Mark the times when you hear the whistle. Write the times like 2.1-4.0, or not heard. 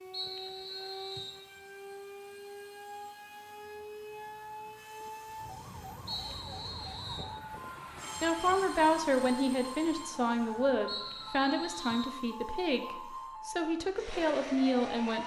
0.1-1.4, 6.0-7.3, 10.8-12.2.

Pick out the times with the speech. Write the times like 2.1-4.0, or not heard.
8.2-15.2.